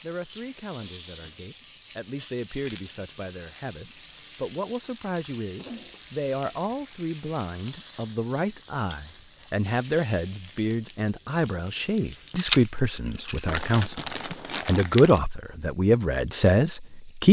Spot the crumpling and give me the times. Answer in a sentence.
The crumpling can be heard from 13.4 to 15.2 s.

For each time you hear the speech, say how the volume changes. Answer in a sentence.
You can hear the speech from 0.0 to 17.2 s, getting louder.